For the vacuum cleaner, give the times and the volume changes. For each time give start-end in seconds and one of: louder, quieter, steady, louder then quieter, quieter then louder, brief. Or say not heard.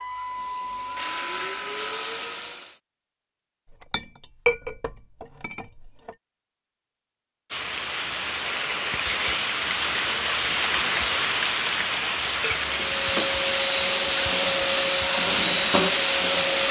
0.0-2.8 brief
12.6-16.6 steady.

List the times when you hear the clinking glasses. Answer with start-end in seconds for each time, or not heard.
3.7-6.2, 12.4-13.4.